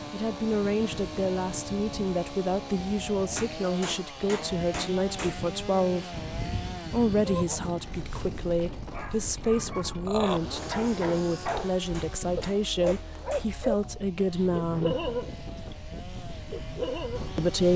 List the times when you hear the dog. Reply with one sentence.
The dog can be heard from 7.2 to 11.8 s and from 12.3 to 17.4 s.